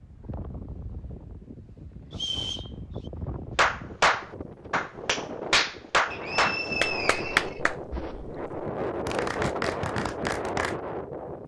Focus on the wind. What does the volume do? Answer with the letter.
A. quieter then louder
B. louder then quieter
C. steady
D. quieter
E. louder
E.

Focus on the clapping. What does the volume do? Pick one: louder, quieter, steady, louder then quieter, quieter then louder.
quieter then louder.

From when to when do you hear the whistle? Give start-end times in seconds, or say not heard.
2.1-3.1, 6.1-7.6.